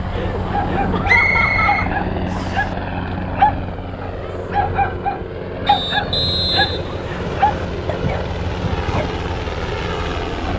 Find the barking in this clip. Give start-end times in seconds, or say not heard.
0.5-9.2.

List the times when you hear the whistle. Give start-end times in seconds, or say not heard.
1.1-2.6, 5.7-7.7.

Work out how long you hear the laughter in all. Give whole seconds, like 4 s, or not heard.
3 s.